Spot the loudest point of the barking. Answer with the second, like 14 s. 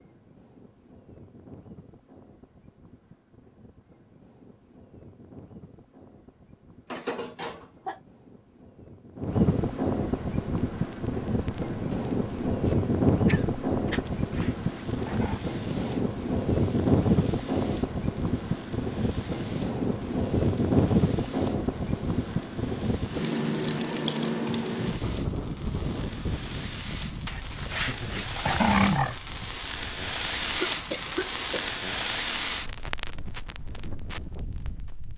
29 s.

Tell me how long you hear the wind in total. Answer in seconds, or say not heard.
35 s.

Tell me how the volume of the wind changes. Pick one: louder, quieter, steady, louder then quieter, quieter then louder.
louder then quieter.